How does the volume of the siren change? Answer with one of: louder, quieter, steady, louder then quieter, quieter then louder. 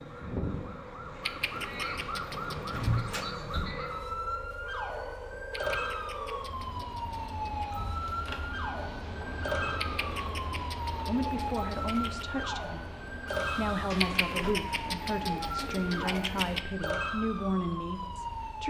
steady.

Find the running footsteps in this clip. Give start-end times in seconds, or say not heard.
not heard.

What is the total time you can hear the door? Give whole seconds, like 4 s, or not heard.
3 s.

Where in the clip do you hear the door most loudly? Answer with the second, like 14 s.
3 s.